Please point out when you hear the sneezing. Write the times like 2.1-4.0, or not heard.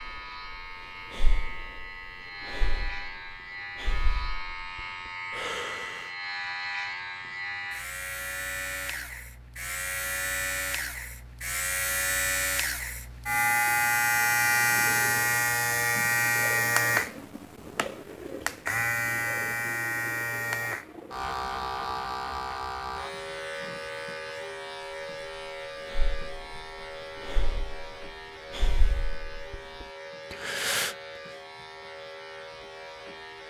not heard.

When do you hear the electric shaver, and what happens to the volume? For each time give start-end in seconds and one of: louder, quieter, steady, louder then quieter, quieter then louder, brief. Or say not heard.
0.0-33.4 louder then quieter.